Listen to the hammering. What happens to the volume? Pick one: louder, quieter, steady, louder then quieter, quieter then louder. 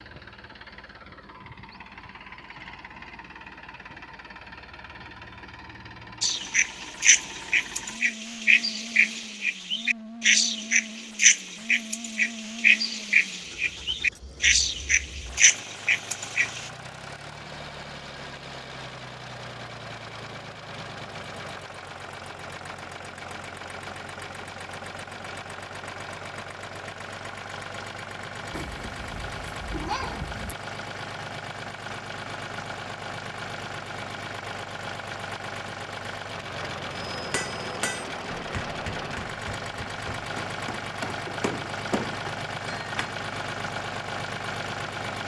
quieter then louder.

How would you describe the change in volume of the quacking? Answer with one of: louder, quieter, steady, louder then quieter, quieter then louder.
steady.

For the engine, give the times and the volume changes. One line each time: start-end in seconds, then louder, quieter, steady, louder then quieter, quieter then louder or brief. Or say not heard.
0.0-45.2 louder.